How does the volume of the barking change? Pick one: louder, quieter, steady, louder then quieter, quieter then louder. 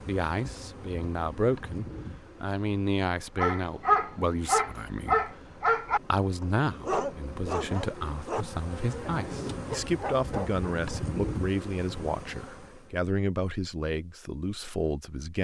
quieter.